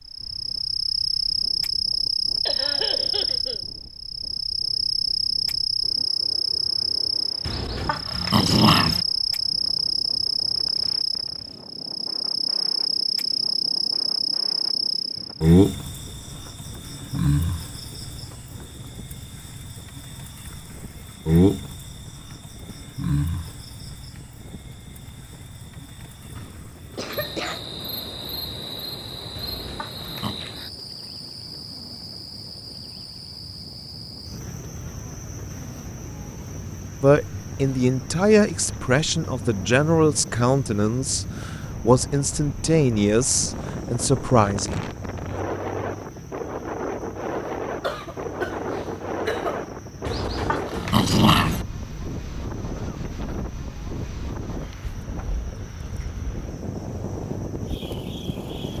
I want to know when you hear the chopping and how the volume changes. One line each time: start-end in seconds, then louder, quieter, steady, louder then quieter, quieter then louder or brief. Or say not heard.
not heard.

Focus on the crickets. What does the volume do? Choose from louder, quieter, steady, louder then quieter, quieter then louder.
quieter.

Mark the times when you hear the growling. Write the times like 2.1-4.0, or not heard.
7.5-9.1, 29.4-30.4, 50.0-51.6.